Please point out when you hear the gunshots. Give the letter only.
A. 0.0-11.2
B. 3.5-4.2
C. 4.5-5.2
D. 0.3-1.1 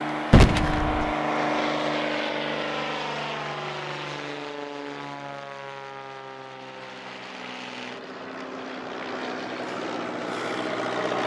D.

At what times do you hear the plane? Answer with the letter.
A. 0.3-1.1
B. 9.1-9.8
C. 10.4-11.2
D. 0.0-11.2
D.